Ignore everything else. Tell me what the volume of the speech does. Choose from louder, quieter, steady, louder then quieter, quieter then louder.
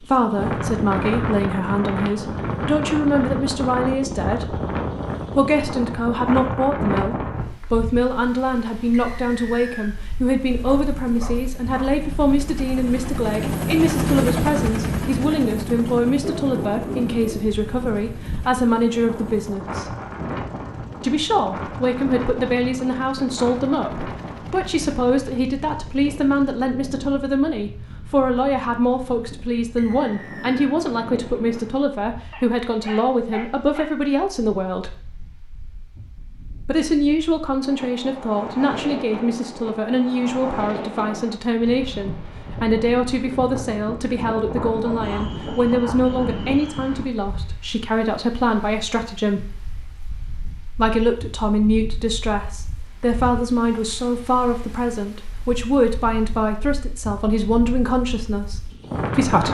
steady.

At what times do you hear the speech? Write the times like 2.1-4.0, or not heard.
0.0-4.6, 5.3-19.9, 21.0-35.0, 36.6-49.5, 50.8-59.4.